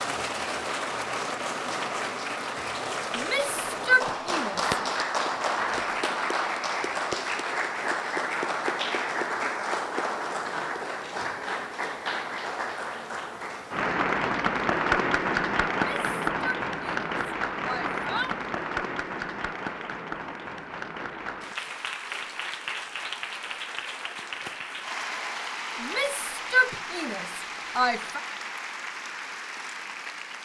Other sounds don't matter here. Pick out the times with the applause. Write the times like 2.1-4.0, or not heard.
0.0-30.4.